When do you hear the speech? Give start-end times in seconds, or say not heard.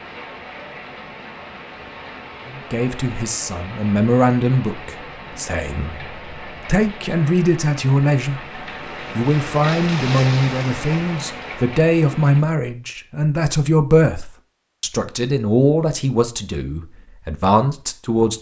2.5-18.3.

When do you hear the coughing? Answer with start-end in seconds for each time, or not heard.
not heard.